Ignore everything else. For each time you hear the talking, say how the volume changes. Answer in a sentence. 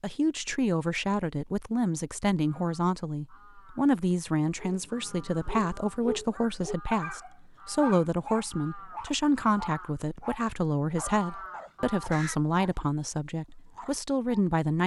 The talking can be heard from 0.0 to 14.8 s, at a steady volume.